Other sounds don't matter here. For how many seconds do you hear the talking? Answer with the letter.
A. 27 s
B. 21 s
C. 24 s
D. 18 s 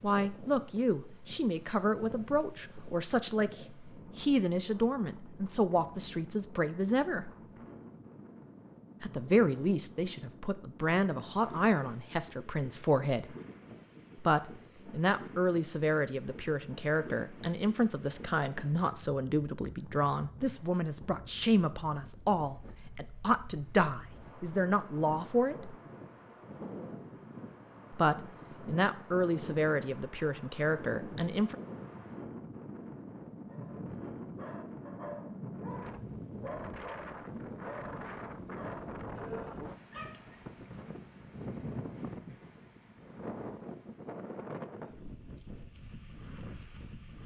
A.